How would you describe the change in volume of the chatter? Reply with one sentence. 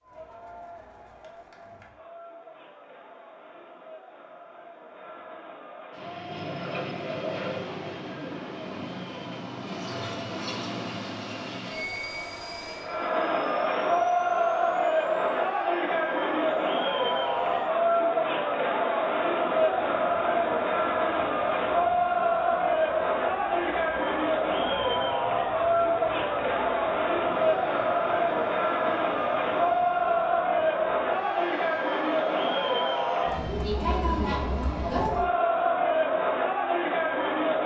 The loudness of the chatter goes up.